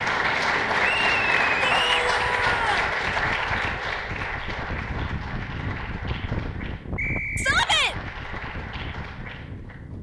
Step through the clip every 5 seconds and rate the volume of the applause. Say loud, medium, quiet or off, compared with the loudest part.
loud, quiet.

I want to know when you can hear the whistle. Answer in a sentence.
You can hear the whistle from 0.8 to 1.9 s and from 7.0 to 7.7 s.